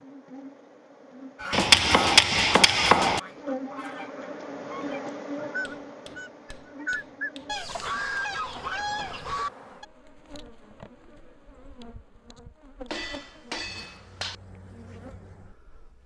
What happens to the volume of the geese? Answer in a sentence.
The loudness of the geese goes down, then up.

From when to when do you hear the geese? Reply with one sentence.
The geese can be heard from 1.4 to 9.8 s.